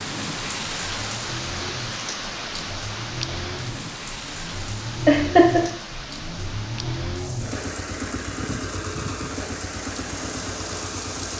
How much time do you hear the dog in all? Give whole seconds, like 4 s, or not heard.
not heard.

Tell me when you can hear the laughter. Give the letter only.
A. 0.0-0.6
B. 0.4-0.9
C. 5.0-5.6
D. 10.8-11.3
C.